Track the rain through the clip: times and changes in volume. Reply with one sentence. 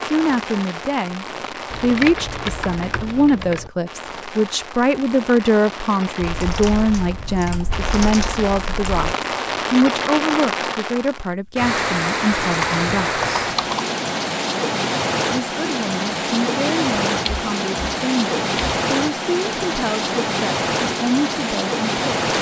The rain can be heard from 0.0 to 22.3 s, getting louder.